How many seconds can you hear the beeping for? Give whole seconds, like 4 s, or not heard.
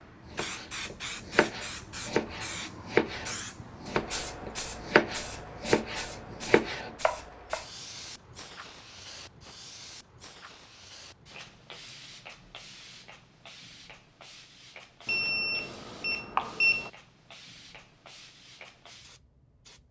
2 s.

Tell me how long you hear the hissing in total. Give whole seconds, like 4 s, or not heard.
20 s.